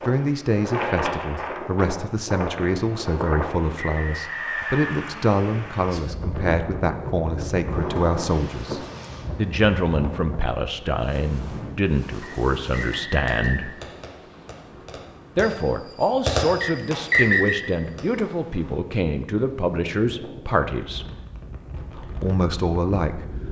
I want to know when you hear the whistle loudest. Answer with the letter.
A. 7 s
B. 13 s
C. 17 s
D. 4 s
C.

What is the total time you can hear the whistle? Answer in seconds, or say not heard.
4 s.